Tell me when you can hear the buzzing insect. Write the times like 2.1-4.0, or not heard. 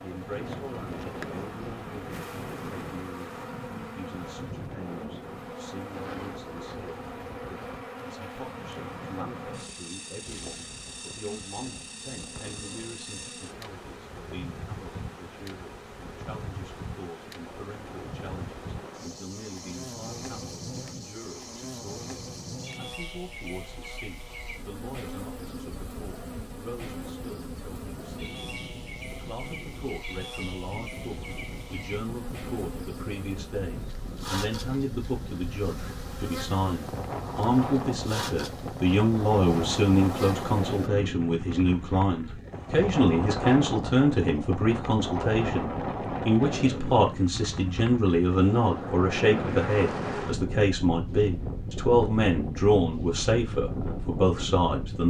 0.0-40.9.